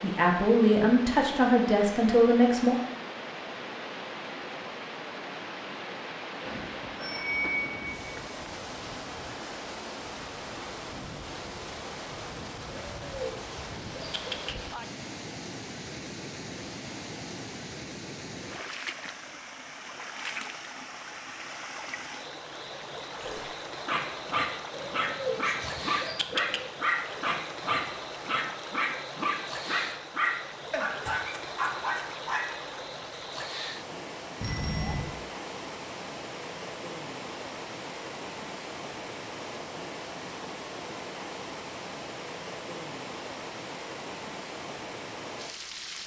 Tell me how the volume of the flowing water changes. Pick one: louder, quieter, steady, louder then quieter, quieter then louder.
steady.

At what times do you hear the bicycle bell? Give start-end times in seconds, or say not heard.
6.5-8.3, 34.4-35.1.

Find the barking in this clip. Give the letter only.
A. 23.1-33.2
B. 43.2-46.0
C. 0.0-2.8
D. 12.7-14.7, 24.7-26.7
A.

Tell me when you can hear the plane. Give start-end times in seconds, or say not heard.
not heard.